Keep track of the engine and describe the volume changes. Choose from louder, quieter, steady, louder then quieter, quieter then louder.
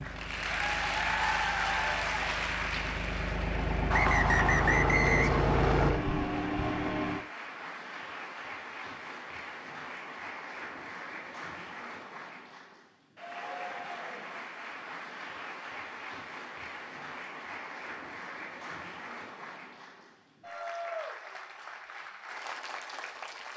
louder.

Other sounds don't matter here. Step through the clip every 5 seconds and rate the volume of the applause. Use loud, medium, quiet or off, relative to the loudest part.
loud, medium, medium, medium, medium.